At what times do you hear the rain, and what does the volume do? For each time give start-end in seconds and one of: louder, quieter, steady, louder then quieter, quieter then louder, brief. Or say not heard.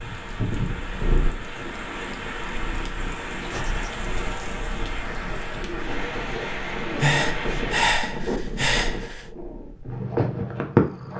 0.0-8.0 steady.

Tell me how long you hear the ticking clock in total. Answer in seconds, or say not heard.
not heard.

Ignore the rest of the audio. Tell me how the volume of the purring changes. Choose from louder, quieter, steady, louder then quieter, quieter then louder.
louder.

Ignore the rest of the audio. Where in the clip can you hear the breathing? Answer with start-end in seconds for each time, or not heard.
3.5-4.0, 7.0-9.2.